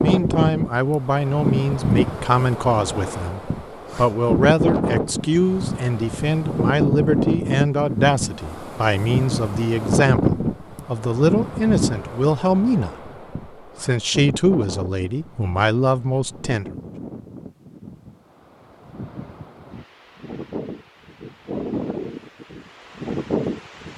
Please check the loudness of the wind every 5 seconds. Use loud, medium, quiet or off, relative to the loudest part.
loud, loud, loud, quiet, medium.